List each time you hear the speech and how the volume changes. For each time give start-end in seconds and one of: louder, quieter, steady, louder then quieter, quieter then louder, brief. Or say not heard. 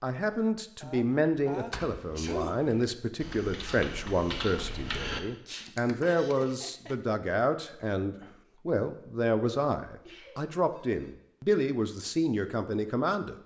0.0-13.3 steady.